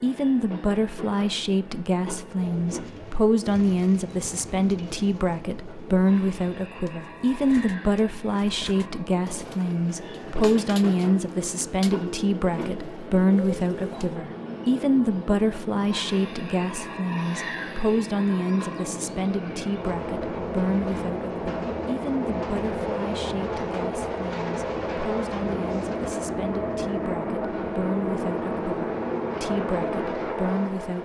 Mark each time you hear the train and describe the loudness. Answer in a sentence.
The train can be heard from 0.0 to 31.0 s, getting louder.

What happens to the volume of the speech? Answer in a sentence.
The loudness of the speech goes down.